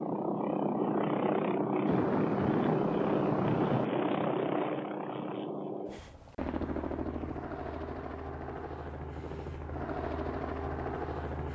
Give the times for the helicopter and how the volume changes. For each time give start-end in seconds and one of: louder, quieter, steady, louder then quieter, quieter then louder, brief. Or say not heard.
0.0-11.5 quieter.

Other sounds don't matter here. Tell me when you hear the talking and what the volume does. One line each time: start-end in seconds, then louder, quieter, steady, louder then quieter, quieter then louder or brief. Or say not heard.
not heard.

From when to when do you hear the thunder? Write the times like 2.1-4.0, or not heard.
1.9-3.9.